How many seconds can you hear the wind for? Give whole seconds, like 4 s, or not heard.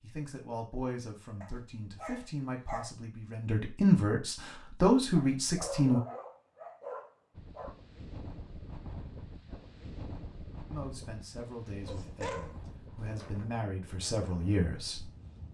8 s.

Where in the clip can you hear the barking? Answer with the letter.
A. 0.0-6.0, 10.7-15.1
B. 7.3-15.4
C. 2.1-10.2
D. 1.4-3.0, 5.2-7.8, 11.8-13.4
D.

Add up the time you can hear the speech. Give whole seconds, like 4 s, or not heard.
10 s.